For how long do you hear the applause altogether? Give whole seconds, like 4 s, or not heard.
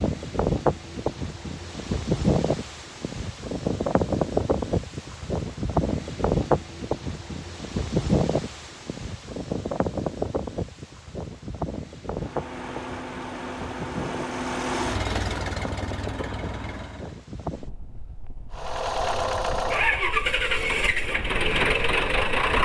not heard.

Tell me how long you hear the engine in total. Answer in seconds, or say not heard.
9 s.